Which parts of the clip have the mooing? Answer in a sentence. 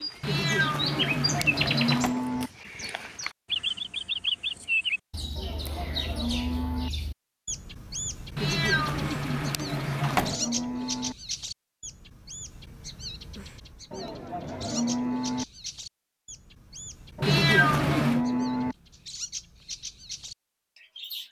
You can hear the mooing from 0.9 to 2.5 s, from 5.3 to 6.9 s, from 9.6 to 11.2 s, from 13.9 to 15.4 s and from 17.1 to 18.8 s.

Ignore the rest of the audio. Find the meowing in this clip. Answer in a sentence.
The meowing can be heard from 0.2 to 2.1 s, from 8.3 to 10.3 s and from 17.2 to 18.2 s.